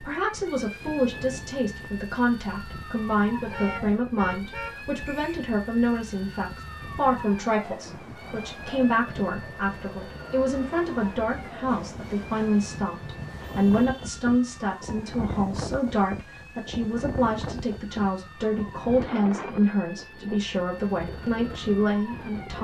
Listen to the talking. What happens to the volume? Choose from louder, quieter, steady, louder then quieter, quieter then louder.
steady.